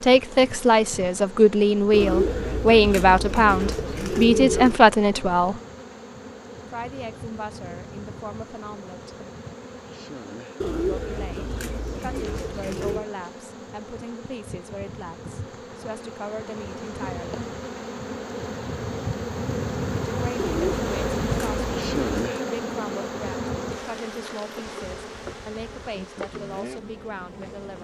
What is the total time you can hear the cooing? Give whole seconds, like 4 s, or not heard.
7 s.